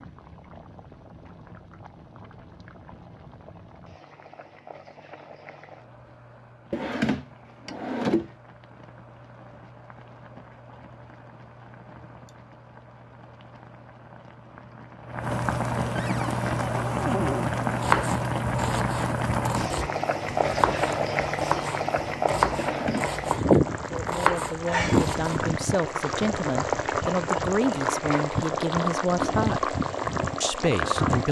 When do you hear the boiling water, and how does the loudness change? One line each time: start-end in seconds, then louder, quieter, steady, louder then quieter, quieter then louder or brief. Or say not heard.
0.0-31.2 louder.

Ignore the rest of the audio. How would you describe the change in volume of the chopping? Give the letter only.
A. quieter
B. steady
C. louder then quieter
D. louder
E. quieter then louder
D.